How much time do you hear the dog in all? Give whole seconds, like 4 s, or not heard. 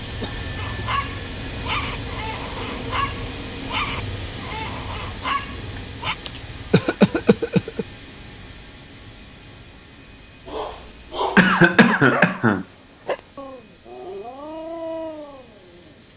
11 s.